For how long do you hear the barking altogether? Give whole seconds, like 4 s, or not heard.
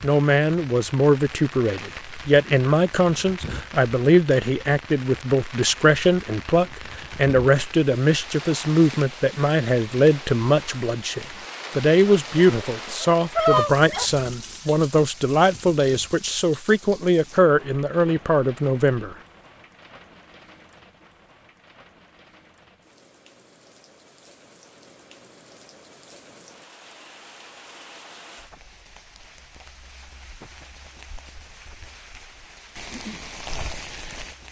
2 s.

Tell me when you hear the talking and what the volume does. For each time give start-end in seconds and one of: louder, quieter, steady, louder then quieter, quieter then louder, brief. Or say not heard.
0.0-19.1 steady.